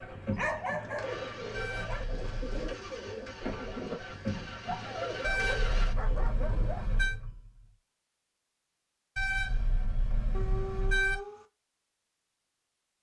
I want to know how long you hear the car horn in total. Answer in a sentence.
You can hear the car horn for 5 seconds altogether.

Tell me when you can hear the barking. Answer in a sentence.
You can hear the barking from 0.3 to 2.0 s, from 4.7 to 6.8 s and from 10.3 to 11.4 s.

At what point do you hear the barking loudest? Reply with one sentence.
The loudest moment of the barking is at 1 second.